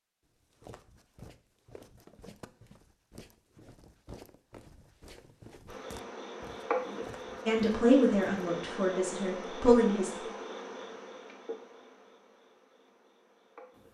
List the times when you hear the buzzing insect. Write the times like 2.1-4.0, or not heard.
5.7-13.9.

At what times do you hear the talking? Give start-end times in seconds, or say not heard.
7.5-10.2.